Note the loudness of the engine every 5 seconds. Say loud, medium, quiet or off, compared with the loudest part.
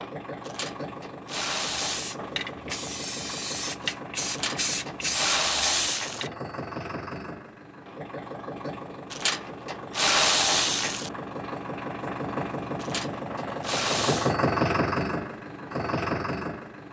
medium, medium, loud, loud.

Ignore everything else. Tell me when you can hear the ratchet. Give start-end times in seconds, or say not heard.
0.5-2.1, 4.2-6.3, 9.1-11.1, 12.8-14.3.